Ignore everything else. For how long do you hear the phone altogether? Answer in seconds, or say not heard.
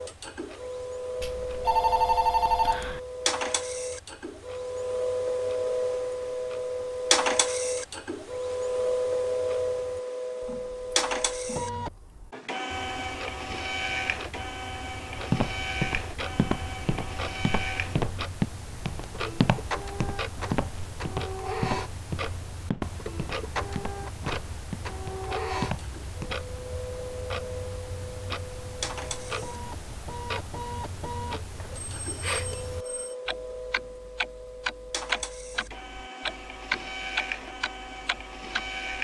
3 s.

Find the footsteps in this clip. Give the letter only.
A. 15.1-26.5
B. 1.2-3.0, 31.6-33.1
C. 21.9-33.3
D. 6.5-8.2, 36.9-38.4
A.